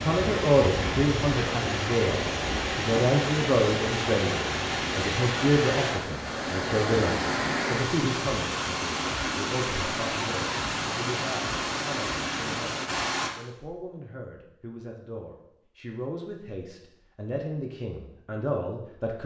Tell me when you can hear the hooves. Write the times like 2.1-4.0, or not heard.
not heard.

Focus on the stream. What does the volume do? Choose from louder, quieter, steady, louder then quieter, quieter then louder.
steady.